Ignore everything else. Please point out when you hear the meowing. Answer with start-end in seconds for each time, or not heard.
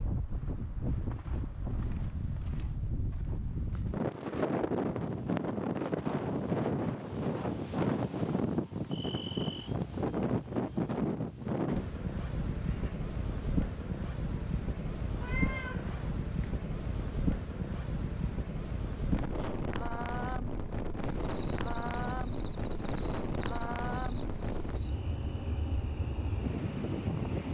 15.2-16.1.